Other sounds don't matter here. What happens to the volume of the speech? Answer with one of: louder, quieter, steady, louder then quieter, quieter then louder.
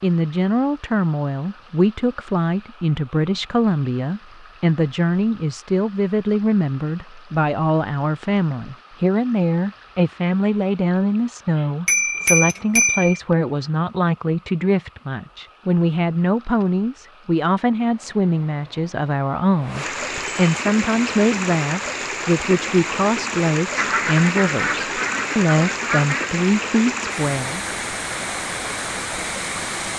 steady.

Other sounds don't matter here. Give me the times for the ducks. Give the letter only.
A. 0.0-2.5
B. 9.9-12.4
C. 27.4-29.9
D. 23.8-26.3
D.